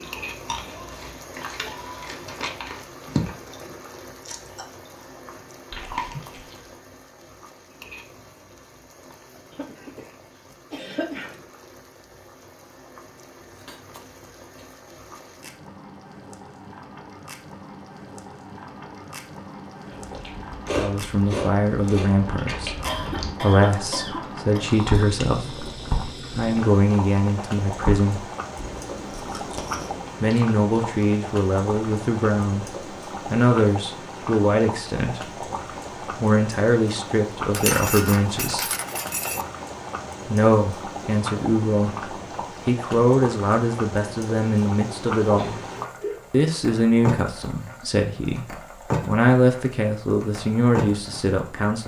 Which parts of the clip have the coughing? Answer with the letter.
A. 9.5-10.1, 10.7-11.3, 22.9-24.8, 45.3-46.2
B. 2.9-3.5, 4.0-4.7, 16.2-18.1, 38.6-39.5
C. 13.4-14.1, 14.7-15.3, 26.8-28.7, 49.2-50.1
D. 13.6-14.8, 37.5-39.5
A.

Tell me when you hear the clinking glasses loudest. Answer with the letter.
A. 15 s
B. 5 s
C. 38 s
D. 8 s
C.